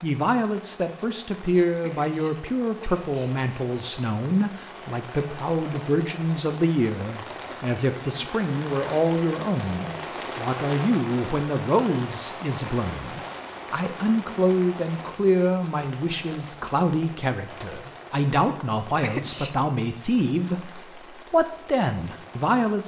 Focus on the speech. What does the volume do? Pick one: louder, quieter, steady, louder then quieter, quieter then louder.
steady.